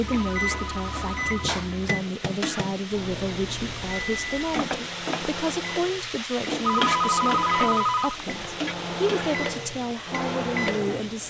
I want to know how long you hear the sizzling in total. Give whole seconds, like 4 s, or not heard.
11 s.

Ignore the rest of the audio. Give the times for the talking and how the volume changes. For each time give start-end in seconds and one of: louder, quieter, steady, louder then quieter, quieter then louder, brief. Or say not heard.
0.0-11.2 steady.